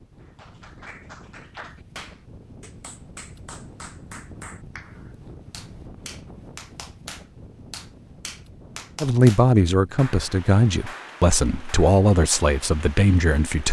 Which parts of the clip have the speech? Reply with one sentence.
The speech can be heard from 9.0 to 13.6 s.